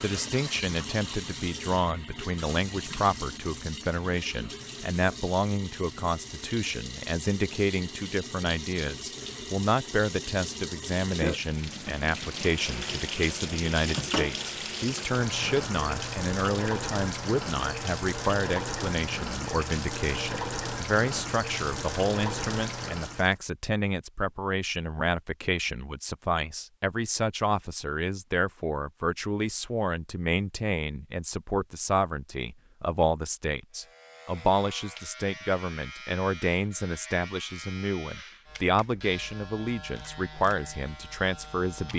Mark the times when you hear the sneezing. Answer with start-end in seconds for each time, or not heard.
not heard.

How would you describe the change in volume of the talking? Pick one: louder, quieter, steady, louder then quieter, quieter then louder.
steady.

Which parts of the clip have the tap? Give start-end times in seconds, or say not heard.
0.0-23.4.